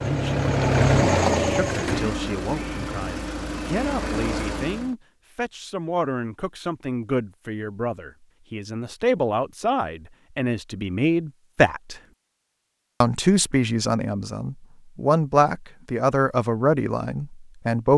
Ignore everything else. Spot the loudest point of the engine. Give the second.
1 s.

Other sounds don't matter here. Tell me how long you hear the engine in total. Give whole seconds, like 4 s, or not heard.
5 s.